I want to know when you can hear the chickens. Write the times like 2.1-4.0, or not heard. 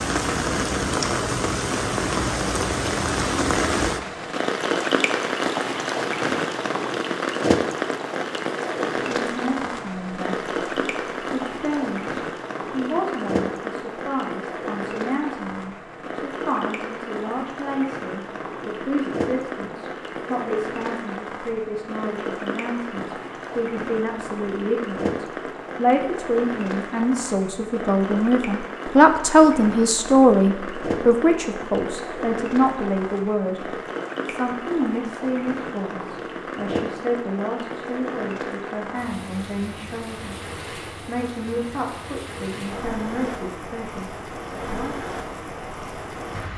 not heard.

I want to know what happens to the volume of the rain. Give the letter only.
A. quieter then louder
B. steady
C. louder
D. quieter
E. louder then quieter
D.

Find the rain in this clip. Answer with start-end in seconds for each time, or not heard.
0.0-46.5.